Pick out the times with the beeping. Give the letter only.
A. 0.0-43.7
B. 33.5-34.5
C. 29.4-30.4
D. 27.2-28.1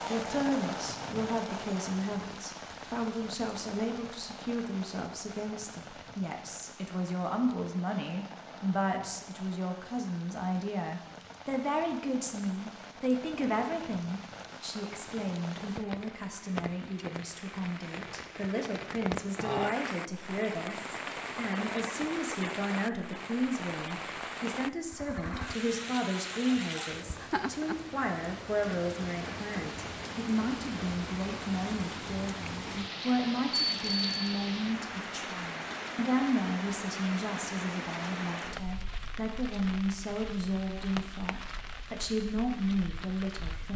B.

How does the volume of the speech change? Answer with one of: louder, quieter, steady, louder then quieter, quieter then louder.
steady.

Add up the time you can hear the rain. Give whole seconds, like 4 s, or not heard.
44 s.